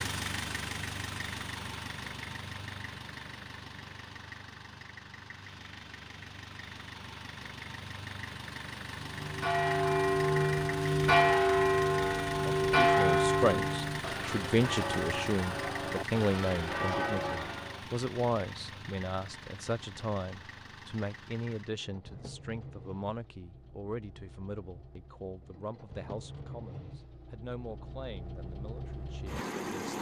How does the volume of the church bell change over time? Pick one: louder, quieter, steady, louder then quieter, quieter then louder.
quieter.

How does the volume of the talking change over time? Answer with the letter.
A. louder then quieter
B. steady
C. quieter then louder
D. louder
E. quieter
E.